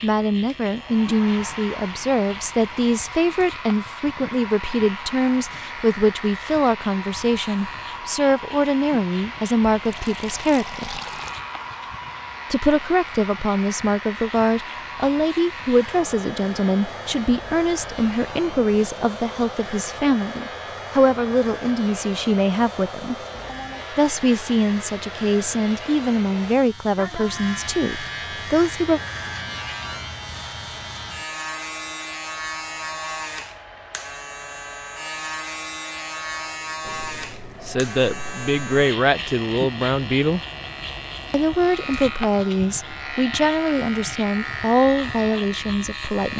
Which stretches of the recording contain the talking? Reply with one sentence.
You can hear the talking from 0.0 to 11.0 s, from 12.5 to 23.1 s, from 23.9 to 29.0 s, from 37.6 to 40.4 s and from 41.3 to 46.3 s.